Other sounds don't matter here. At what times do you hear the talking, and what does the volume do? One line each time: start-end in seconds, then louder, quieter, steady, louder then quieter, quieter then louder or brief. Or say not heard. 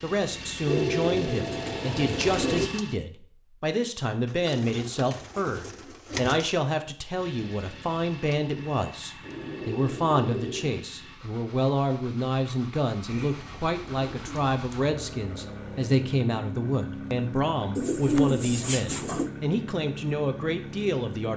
0.0-21.3 steady.